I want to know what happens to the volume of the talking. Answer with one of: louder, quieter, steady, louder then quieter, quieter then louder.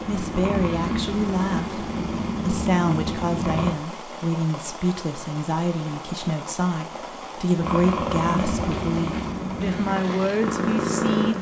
steady.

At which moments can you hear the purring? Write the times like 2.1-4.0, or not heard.
0.0-3.7, 7.6-11.3.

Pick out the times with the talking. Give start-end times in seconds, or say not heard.
0.0-11.3.